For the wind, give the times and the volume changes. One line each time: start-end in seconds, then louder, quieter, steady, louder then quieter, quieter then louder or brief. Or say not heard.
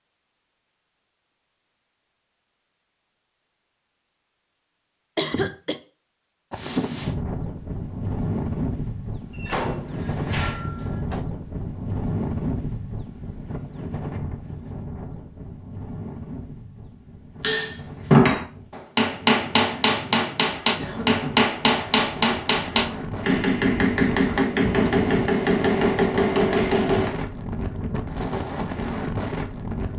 6.5-29.9 quieter then louder.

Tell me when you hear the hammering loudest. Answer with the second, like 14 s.
18 s.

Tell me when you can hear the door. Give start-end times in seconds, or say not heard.
9.3-11.2.